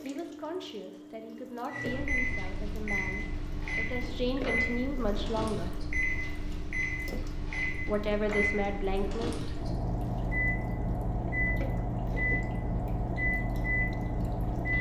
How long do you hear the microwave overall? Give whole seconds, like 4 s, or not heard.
13 s.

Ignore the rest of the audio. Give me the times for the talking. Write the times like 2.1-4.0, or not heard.
0.0-5.8, 7.8-9.3.